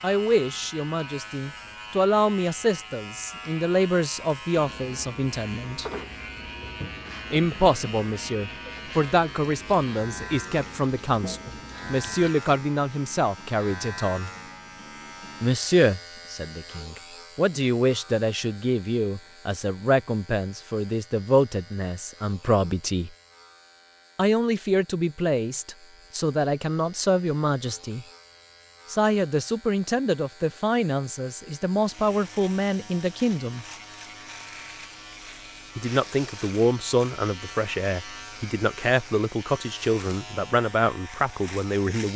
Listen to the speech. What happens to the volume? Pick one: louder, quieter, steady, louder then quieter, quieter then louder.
steady.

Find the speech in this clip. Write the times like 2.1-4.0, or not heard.
0.0-5.9, 7.3-14.3, 15.4-23.1, 24.1-28.1, 28.9-33.6, 35.8-42.1.